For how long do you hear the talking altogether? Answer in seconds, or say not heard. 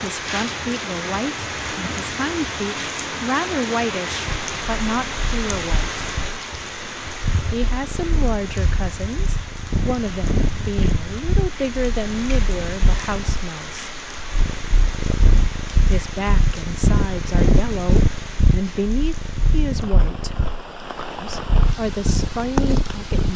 19 s.